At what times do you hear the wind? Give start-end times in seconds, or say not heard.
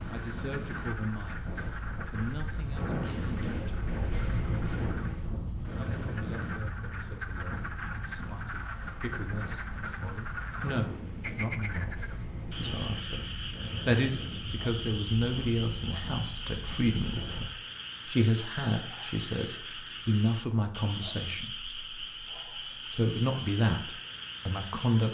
0.0-17.6.